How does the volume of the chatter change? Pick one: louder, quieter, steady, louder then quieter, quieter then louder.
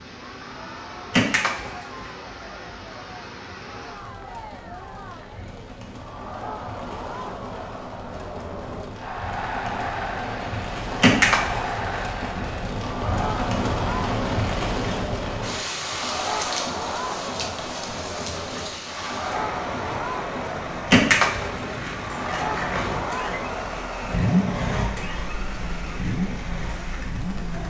louder.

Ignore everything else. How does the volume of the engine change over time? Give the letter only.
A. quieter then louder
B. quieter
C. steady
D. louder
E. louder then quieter
E.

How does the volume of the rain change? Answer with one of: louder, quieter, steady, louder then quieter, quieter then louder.
louder then quieter.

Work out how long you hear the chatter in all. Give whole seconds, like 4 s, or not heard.
27 s.